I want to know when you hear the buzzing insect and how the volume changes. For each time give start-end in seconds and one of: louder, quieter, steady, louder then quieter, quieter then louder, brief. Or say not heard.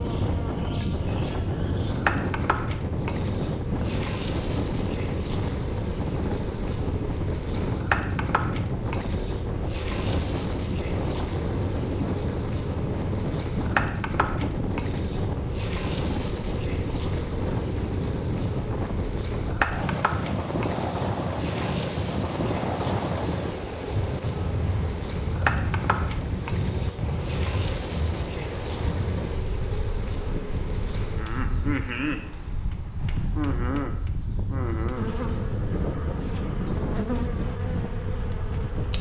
0.0-38.9 steady.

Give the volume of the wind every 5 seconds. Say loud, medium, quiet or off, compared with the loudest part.
loud, loud, loud, loud, loud, loud, medium, loud.